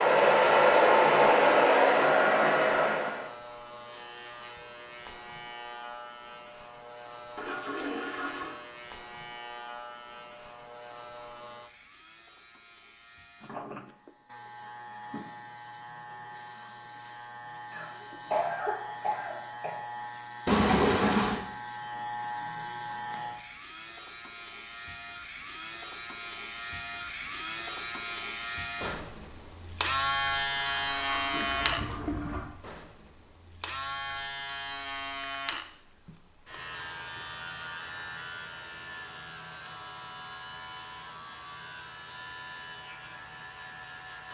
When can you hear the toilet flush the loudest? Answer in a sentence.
The loudest moment of the toilet flush is at 21 seconds.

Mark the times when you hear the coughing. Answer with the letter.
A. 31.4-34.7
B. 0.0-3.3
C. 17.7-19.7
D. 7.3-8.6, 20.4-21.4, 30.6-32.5
C.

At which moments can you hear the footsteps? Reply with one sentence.
You can't hear the footsteps here.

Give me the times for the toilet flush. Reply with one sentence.
The toilet flush can be heard from 7.3 to 8.6 s, from 20.4 to 21.4 s and from 30.6 to 32.5 s.